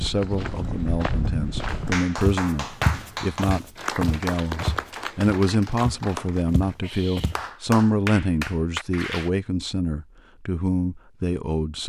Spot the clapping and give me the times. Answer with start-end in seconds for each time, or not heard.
1.6-9.3.